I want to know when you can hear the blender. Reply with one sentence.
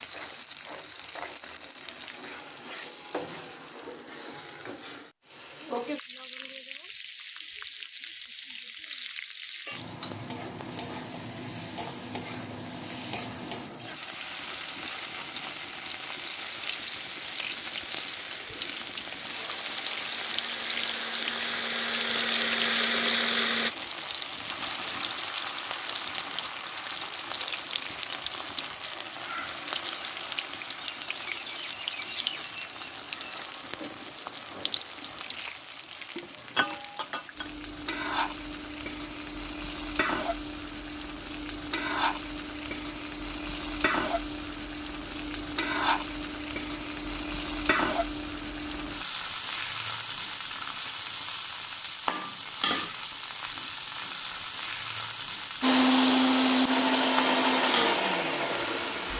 The blender can be heard from 16.6 to 23.7 s and from 55.6 to 59.1 s.